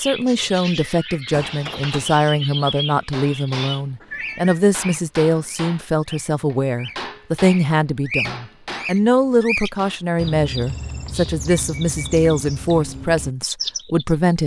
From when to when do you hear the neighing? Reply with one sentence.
You can't hear the neighing here.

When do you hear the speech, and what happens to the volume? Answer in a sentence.
You can hear the speech from 0.0 to 14.4 s, at a steady volume.